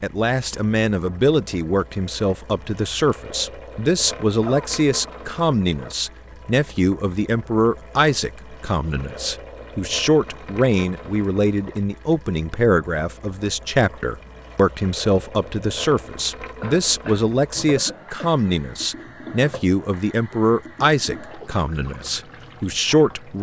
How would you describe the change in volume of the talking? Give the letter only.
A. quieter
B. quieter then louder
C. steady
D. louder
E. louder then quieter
C.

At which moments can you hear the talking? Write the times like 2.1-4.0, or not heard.
0.0-23.3.